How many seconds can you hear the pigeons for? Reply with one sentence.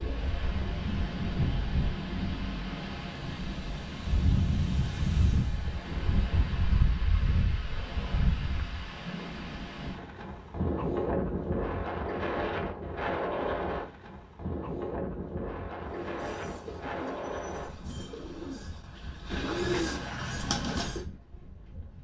You can hear the pigeons for 5 seconds altogether.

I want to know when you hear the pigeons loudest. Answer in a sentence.
The volume of the pigeons peaks at 20 seconds.